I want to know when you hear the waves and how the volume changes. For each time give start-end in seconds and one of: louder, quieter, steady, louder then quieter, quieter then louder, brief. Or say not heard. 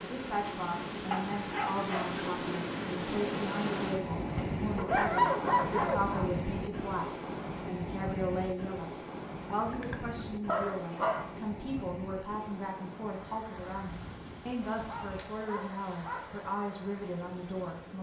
0.0-17.9 quieter.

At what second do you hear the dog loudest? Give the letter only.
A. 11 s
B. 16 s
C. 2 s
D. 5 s
D.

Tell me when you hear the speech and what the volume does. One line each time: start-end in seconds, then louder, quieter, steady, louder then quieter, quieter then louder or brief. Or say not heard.
0.0-17.9 steady.